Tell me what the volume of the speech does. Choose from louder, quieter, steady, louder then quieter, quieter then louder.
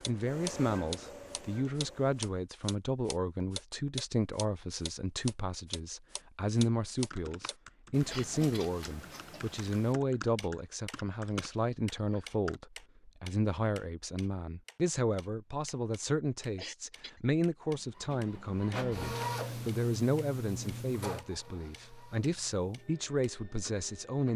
steady.